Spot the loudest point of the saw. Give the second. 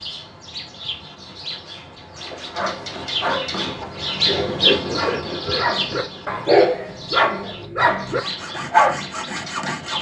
5 s.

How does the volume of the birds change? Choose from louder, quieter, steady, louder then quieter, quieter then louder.
louder then quieter.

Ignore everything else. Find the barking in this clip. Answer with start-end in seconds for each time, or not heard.
2.3-9.0.